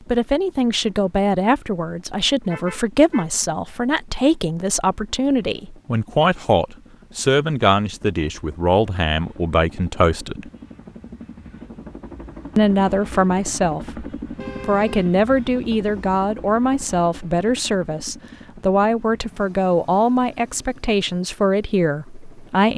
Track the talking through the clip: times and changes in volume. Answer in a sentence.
The talking can be heard from 0.1 to 10.5 s, at a steady volume; briefly from 12.6 to 14.1 s; and from 14.7 to 22.7 s, at a steady volume.